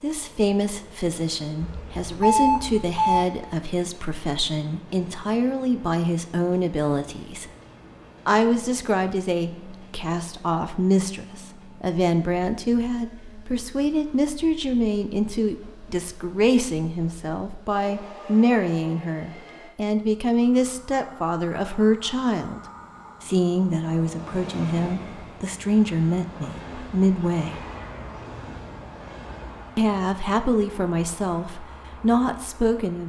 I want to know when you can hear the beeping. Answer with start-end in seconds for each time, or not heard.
1.6-3.2.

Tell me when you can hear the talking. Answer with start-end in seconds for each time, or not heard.
0.0-7.5, 8.2-22.6, 23.2-27.6, 29.8-33.0.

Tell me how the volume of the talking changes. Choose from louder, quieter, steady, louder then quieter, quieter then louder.
steady.